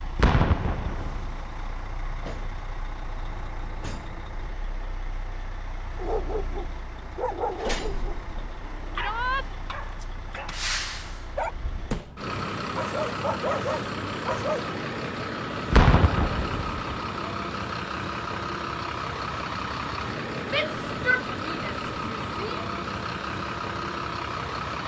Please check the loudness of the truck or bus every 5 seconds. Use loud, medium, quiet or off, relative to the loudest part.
medium, medium, loud, loud, loud.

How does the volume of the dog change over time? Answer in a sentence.
The loudness of the dog goes down, then up.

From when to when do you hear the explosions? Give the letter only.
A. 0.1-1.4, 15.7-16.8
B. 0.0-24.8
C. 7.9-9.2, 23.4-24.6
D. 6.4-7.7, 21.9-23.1
A.